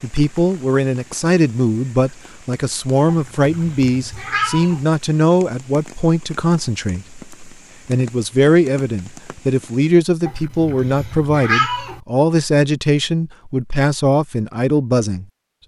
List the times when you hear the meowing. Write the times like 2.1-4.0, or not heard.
3.0-4.8, 10.2-12.0.